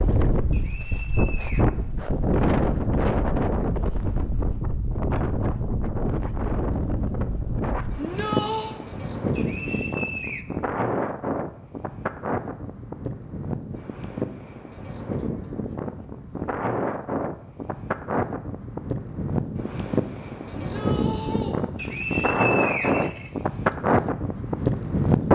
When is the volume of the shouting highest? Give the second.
8 s.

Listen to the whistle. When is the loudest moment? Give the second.
23 s.